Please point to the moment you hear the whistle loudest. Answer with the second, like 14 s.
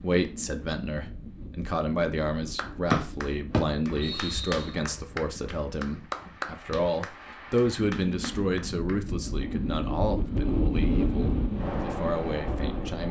3 s.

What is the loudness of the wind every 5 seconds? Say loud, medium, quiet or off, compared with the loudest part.
quiet, medium, loud.